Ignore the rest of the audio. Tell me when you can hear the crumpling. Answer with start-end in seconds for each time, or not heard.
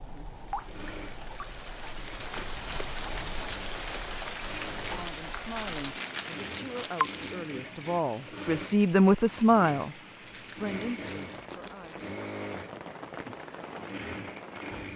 2.2-3.0, 5.5-7.5, 10.2-12.2.